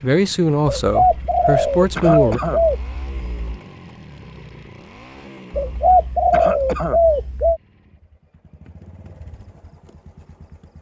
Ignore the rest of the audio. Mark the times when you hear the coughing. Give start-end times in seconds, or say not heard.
1.9-2.6, 6.3-7.0.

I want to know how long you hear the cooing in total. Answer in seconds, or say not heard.
5 s.